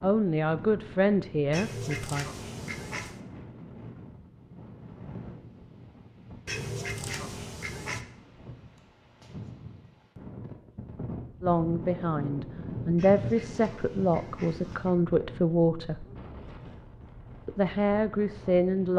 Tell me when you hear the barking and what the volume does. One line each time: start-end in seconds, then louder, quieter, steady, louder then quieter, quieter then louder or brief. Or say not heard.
not heard.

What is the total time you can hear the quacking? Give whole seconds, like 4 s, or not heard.
5 s.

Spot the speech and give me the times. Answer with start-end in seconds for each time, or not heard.
0.0-2.2, 11.4-16.1, 17.4-18.9.